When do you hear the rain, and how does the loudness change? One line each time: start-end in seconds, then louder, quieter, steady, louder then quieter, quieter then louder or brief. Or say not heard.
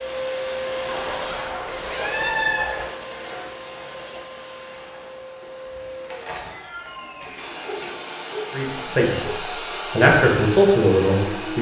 not heard.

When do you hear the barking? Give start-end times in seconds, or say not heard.
0.8-2.9, 7.2-9.6.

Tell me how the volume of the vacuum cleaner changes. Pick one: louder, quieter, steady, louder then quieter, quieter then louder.
quieter then louder.